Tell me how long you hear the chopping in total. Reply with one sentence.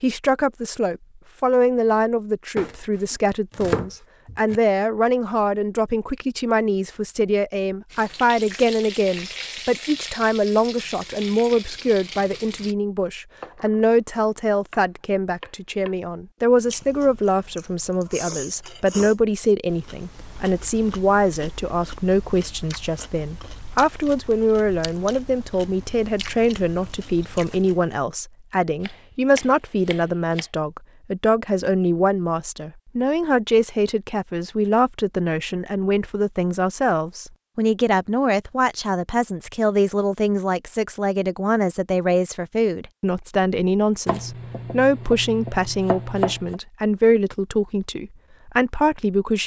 The chopping can be heard for 8 seconds in total.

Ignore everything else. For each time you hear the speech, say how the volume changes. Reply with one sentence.
The speech can be heard from 0.0 to 49.4 s, at a steady volume.